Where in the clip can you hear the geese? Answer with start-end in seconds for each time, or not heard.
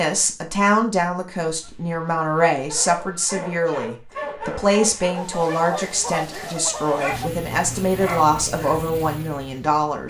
1.6-3.4, 5.2-7.3.